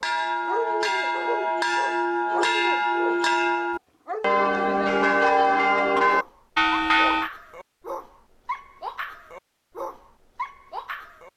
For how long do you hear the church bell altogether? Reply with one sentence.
The church bell can be heard for 7 seconds in total.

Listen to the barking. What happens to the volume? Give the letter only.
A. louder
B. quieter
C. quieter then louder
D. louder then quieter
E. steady
B.